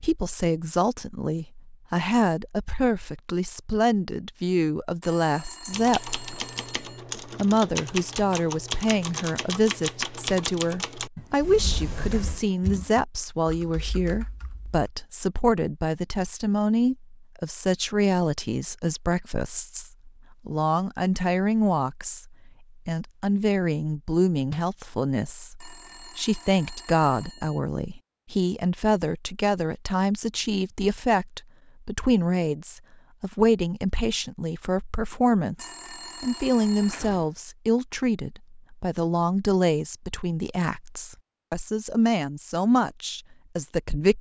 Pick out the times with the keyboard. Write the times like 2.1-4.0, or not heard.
5.7-14.9.